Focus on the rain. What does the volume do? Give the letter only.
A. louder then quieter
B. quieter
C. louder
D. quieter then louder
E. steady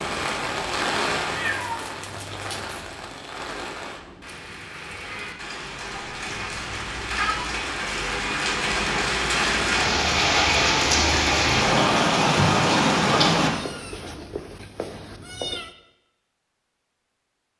D.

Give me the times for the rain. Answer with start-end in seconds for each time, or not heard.
0.0-13.5.